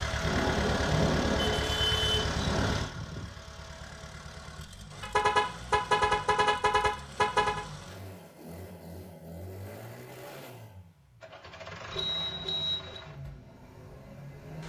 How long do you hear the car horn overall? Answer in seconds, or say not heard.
6 s.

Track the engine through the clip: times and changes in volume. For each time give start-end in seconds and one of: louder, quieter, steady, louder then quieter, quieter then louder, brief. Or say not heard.
0.0-14.6 quieter.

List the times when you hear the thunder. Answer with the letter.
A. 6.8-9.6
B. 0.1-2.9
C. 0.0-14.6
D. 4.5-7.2
B.